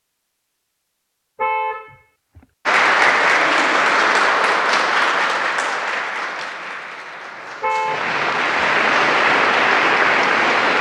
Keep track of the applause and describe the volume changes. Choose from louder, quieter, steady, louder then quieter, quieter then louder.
quieter then louder.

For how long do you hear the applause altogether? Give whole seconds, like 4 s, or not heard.
8 s.